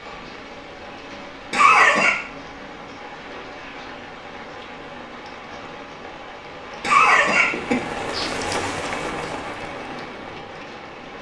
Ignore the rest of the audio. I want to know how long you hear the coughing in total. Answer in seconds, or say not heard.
2 s.